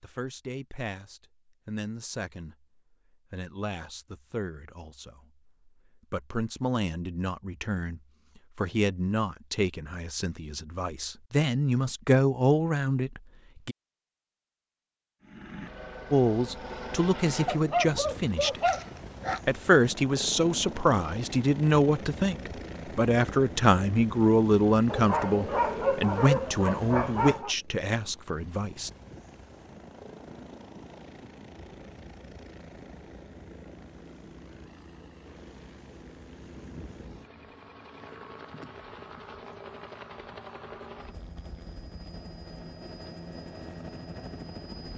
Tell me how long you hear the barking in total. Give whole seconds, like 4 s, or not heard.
5 s.